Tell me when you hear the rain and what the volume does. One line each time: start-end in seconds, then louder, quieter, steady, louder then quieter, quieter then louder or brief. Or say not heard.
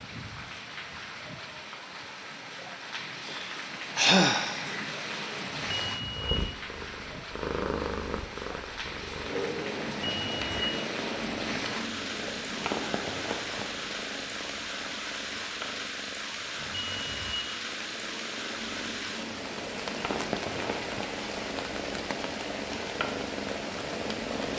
0.0-24.5 steady.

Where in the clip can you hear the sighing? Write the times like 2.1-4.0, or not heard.
3.2-4.7.